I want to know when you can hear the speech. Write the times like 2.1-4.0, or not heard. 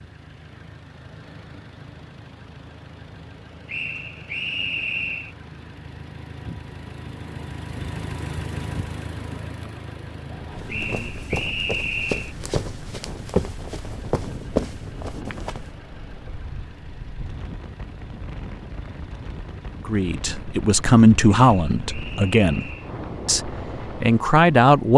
19.9-24.9.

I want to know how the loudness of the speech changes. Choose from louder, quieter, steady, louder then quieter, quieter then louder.
quieter then louder.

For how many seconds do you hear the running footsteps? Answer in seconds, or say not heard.
5 s.